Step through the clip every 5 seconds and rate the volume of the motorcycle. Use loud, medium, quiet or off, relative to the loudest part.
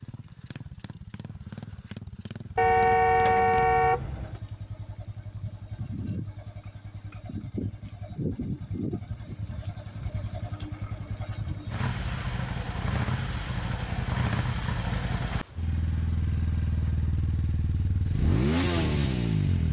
quiet, medium, loud, loud.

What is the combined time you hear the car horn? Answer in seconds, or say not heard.
2 s.